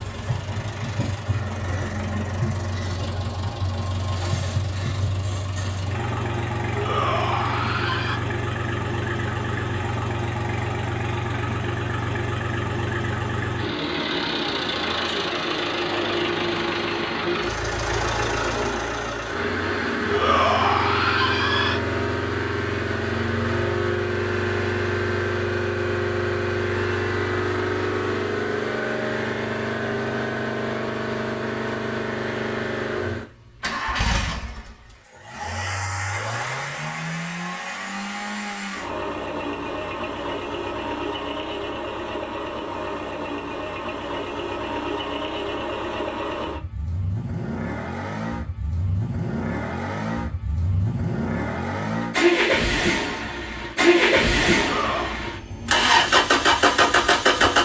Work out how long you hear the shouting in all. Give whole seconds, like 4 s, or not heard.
4 s.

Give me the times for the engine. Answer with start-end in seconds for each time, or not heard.
0.0-57.6.